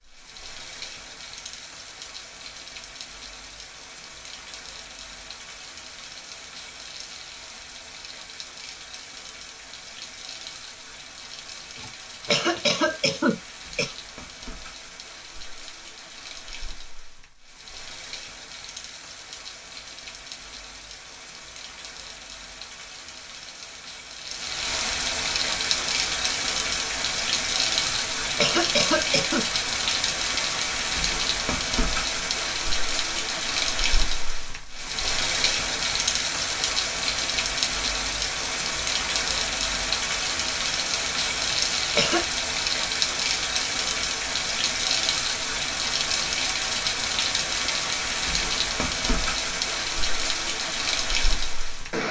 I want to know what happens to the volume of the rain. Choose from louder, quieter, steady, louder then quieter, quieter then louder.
louder.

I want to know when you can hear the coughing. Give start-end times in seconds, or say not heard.
11.8-13.9, 27.9-29.4, 41.5-42.2.